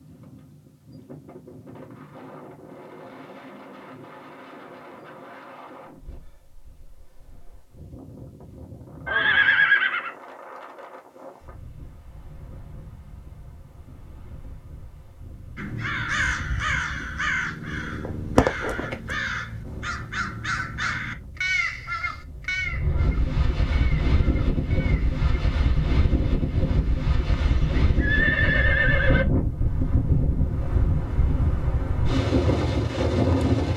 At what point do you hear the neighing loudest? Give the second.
10 s.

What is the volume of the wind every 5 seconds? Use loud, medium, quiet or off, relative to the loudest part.
quiet, quiet, quiet, quiet, medium, loud, loud.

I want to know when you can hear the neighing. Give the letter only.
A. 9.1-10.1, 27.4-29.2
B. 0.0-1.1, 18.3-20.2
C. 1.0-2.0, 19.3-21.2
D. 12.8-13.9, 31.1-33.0
A.